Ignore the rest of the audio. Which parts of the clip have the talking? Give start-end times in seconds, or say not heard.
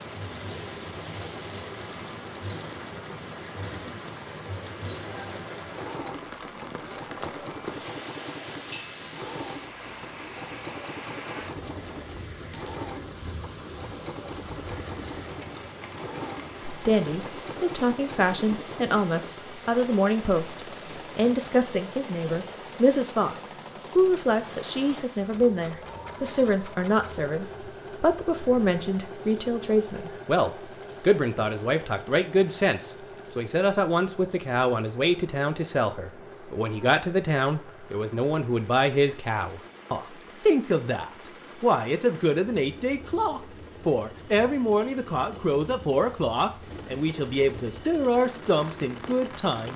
16.6-49.7.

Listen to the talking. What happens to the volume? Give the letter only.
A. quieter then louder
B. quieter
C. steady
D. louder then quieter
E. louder
C.